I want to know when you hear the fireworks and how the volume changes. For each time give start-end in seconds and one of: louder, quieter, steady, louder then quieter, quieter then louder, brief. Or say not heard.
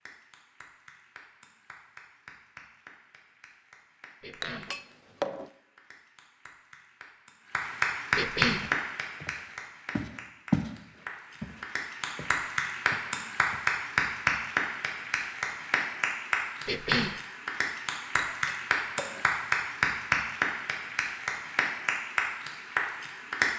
not heard.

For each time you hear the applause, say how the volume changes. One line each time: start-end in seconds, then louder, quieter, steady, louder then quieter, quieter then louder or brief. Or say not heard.
0.0-23.5 louder.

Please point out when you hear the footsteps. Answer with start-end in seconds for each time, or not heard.
8.6-10.7, 11.4-13.7.